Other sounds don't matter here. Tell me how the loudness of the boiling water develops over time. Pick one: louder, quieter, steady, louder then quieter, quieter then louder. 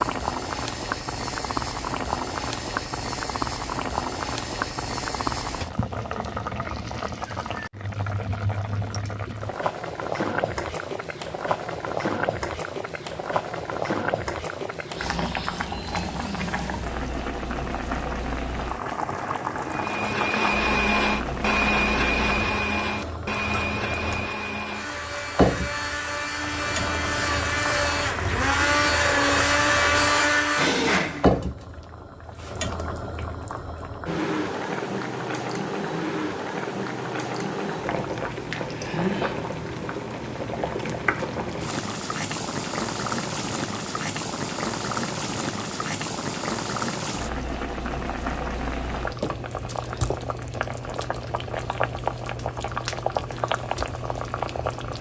steady.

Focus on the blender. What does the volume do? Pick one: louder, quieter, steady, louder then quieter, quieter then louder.
quieter then louder.